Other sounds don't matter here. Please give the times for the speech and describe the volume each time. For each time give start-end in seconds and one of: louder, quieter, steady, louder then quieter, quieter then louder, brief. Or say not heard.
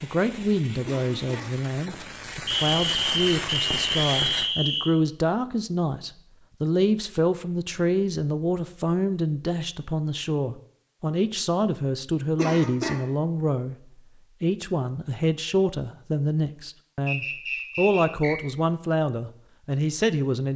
0.0-13.8 steady
14.4-20.5 steady.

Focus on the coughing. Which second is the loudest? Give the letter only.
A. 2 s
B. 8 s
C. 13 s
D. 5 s
C.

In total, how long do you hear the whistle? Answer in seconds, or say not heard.
4 s.